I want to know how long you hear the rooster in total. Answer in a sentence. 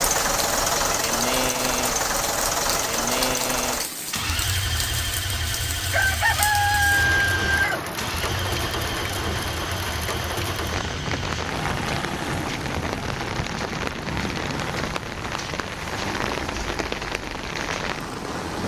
You can hear the rooster for 2 seconds altogether.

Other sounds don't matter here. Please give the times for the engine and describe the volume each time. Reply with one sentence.
You can hear the engine from 0.0 to 18.6 s, getting quieter.